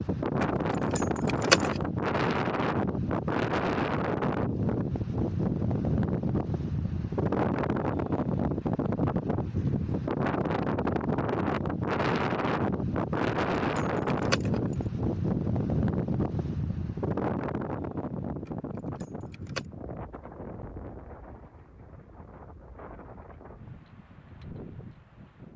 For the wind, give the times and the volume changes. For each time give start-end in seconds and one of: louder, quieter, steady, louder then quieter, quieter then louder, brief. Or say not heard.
0.0-25.5 quieter.